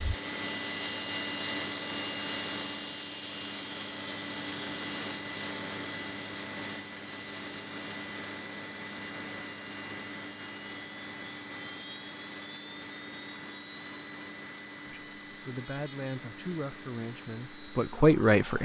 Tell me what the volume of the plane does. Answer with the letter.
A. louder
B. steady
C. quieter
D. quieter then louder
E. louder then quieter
C.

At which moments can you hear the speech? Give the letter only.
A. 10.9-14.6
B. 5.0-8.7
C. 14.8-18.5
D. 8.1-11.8
C.